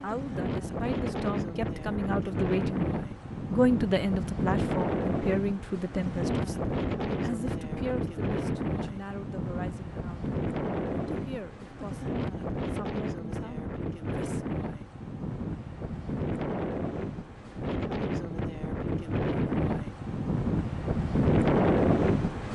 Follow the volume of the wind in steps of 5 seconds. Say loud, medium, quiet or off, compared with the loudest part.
medium, medium, medium, medium, loud.